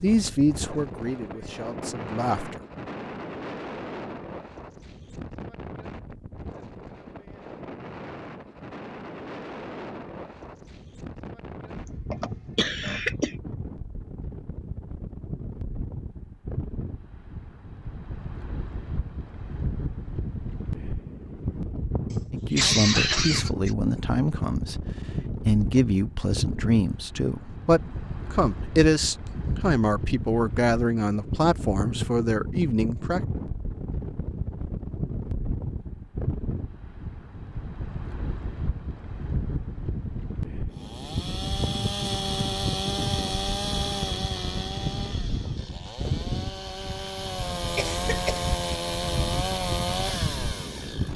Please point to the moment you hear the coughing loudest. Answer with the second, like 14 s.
23 s.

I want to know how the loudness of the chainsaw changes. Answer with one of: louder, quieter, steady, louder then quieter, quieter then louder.
quieter then louder.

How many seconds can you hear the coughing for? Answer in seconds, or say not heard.
4 s.